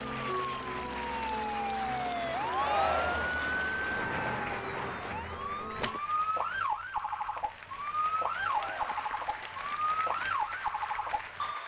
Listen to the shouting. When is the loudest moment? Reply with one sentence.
The loudest moment of the shouting is at 3 seconds.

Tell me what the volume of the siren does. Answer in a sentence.
The volume of the siren stays about the same.